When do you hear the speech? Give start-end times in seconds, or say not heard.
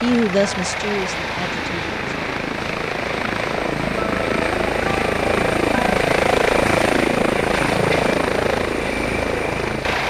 0.0-2.1.